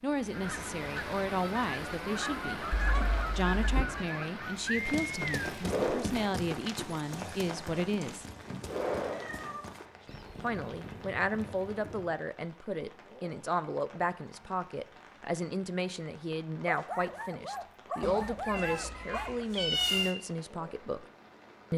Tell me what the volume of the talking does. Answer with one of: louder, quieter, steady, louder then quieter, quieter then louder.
steady.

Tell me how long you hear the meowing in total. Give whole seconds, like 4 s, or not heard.
5 s.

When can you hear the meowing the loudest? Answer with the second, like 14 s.
20 s.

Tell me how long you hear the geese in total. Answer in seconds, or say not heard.
5 s.